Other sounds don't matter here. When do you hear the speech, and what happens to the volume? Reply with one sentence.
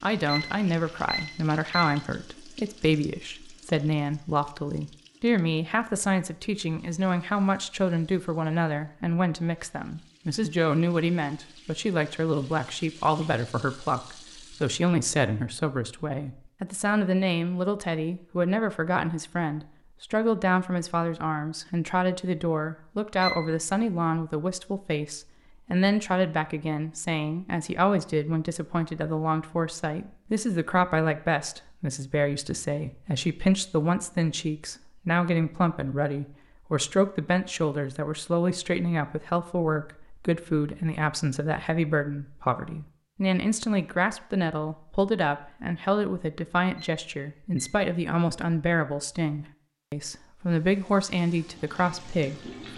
The speech can be heard from 0.0 to 52.7 s, at a steady volume.